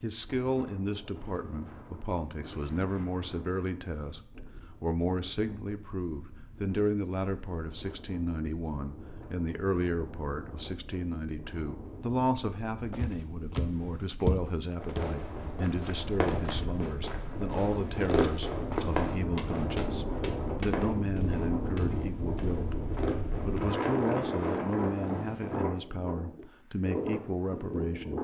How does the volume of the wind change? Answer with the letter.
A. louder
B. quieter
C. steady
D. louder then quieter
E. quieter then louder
A.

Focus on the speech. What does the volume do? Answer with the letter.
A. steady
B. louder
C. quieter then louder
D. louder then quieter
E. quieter
A.